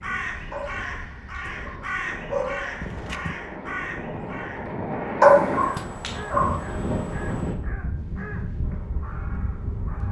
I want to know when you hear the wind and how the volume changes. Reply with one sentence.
You can hear the wind from 0.0 to 10.0 s, getting louder then quieter.